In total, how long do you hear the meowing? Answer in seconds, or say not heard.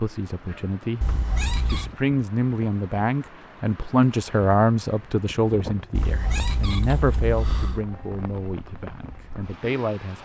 3 s.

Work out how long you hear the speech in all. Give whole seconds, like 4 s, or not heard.
10 s.